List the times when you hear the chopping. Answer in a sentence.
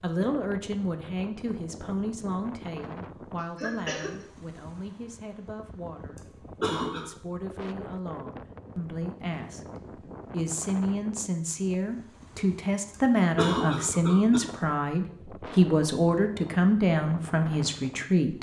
You can't hear the chopping here.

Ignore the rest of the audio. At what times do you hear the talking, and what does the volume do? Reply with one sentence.
You can hear the talking from 0.0 to 18.3 s, getting quieter then louder.